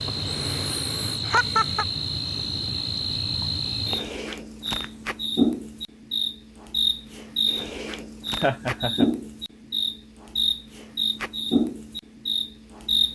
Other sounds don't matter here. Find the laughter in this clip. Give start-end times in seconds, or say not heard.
1.2-1.9, 8.4-9.1.